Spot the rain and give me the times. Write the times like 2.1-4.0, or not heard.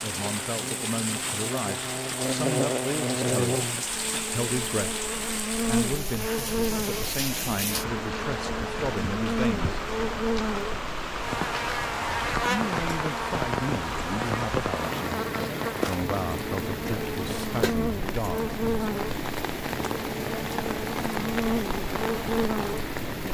0.0-23.3.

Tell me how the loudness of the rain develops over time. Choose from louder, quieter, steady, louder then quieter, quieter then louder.
steady.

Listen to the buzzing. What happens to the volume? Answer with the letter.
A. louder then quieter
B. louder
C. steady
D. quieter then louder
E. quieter
C.